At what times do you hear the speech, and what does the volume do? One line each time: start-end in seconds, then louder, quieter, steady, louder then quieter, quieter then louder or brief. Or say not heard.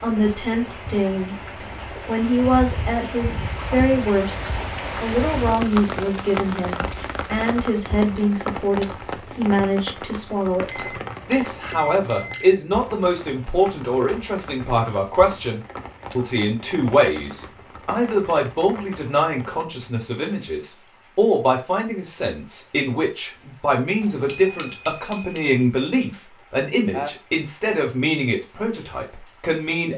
0.0-1.4 brief
2.0-29.9 steady.